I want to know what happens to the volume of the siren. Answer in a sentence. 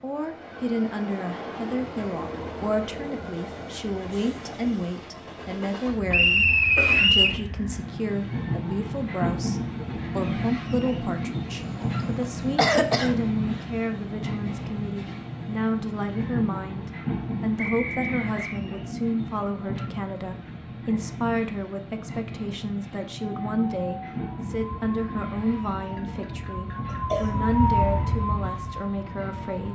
The loudness of the siren goes up, then down.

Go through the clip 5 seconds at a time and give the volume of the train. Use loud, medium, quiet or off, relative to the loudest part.
medium, loud, loud, loud, medium, medium.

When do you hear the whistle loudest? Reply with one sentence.
The volume of the whistle peaks at 7 seconds.